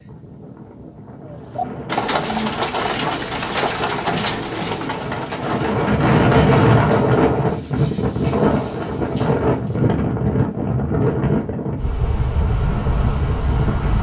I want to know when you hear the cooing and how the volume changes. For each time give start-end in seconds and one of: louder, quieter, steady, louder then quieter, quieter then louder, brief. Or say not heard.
1.2-9.8 quieter.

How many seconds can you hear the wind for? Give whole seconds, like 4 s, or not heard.
14 s.